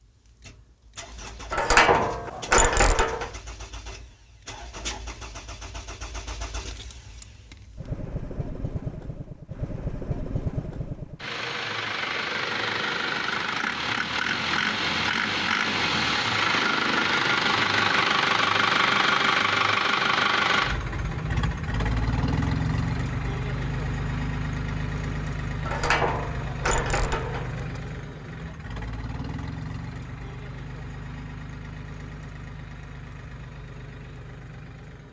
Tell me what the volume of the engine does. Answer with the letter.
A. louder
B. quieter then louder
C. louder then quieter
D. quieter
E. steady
C.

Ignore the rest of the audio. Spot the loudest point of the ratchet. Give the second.
2 s.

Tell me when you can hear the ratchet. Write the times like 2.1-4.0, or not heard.
1.5-3.3, 25.6-27.8.